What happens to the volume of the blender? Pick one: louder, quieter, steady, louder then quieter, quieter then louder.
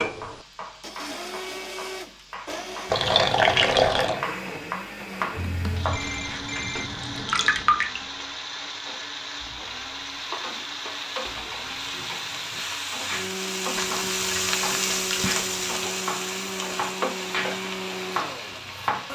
steady.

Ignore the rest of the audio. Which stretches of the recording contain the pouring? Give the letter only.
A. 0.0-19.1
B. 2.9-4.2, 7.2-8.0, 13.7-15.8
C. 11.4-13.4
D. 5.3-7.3
B.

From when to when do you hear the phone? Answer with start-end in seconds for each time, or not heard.
5.3-7.3.